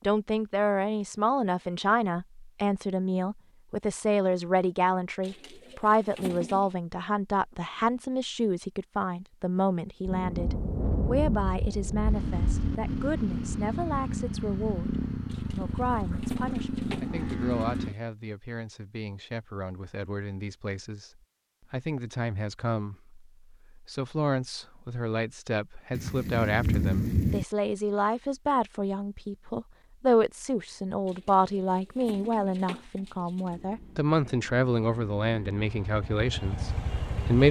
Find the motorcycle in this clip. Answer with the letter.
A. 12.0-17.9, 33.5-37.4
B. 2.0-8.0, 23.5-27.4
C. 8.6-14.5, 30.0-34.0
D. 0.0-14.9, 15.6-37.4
A.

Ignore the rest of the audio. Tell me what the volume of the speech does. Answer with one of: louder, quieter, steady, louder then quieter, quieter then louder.
quieter then louder.